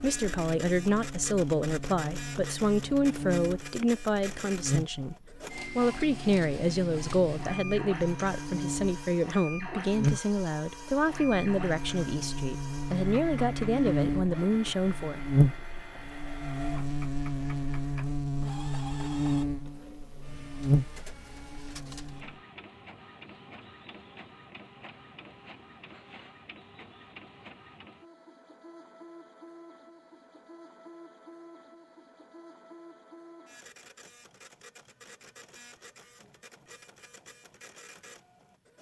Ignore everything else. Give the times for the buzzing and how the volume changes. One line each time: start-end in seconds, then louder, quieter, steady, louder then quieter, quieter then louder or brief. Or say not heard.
0.0-22.4 louder.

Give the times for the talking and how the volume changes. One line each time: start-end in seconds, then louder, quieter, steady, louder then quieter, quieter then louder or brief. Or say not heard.
0.0-15.2 steady.